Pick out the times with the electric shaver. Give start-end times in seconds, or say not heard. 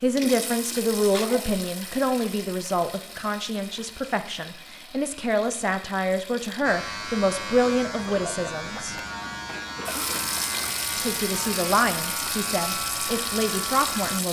6.6-14.2.